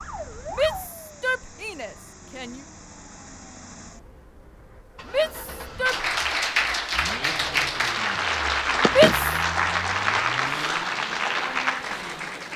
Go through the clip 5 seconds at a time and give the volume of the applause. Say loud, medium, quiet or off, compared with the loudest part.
off, loud, loud.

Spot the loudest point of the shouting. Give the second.
9 s.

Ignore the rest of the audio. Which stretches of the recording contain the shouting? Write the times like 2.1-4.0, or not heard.
0.5-2.6, 5.0-6.0, 8.8-9.2.